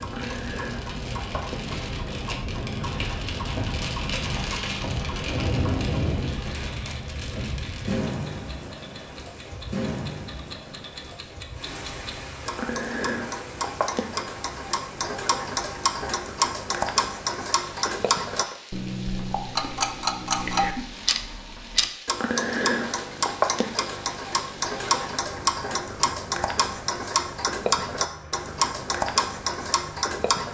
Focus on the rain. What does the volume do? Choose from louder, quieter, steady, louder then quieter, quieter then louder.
quieter.